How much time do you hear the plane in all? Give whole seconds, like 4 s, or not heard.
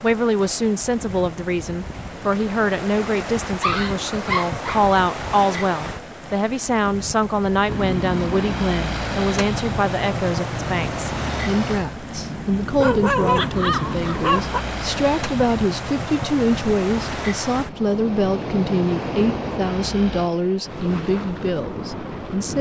13 s.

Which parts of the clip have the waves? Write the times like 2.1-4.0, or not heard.
0.0-22.5.